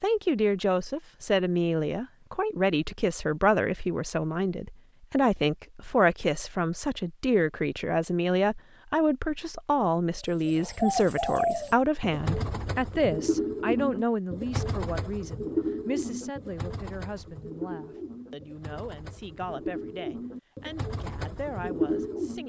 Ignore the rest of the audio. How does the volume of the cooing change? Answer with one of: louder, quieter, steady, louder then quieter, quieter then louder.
quieter then louder.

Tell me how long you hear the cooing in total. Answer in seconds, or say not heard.
12 s.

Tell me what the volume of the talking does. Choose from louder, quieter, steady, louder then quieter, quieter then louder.
quieter.